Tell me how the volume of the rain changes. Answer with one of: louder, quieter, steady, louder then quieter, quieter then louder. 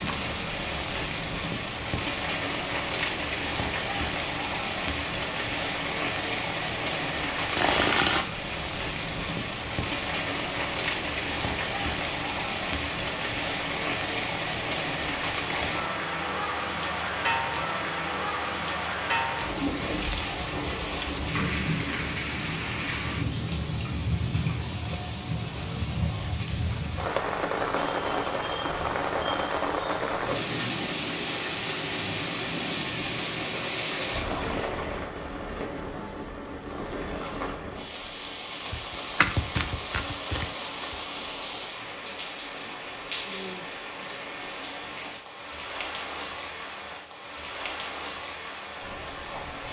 quieter.